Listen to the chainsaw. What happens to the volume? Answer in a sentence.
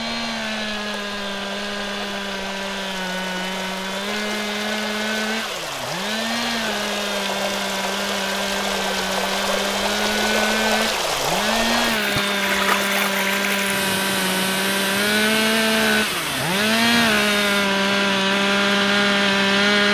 The loudness of the chainsaw goes up.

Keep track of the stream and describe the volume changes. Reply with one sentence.
The volume of the stream goes up, then down.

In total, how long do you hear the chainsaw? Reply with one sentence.
You can hear the chainsaw for 20 seconds altogether.